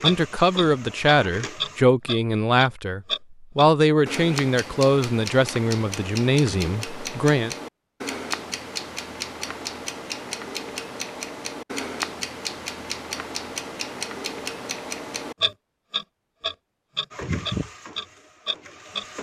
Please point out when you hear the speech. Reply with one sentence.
You can hear the speech from 0.0 to 7.5 s.